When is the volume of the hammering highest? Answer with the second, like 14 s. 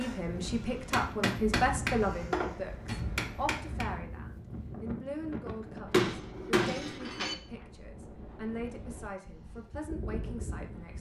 6 s.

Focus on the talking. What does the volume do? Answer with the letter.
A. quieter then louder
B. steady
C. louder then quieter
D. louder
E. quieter
E.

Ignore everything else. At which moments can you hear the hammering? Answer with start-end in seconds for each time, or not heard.
0.9-3.9, 5.9-7.3.